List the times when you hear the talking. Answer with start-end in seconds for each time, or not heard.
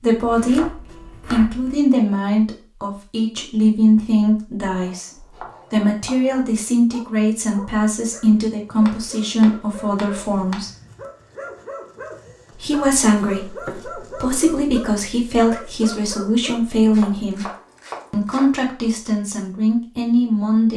0.0-0.7, 1.3-10.7, 12.6-17.4, 18.1-20.7.